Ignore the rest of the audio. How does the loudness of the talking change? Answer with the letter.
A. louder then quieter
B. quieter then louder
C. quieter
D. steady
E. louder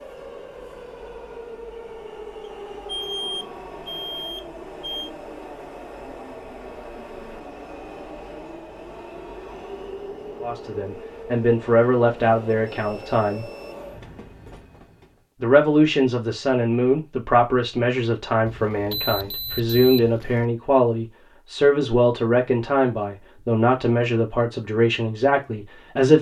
D.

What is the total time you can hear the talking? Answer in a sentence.
The talking can be heard for 14 seconds in total.